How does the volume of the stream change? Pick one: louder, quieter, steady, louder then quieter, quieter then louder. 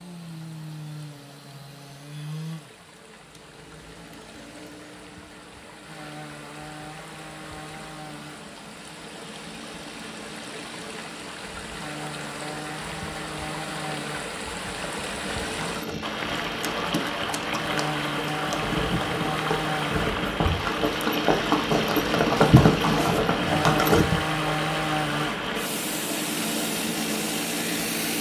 louder.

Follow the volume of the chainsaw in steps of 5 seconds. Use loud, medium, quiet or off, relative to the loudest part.
medium, quiet, medium, loud, loud, loud.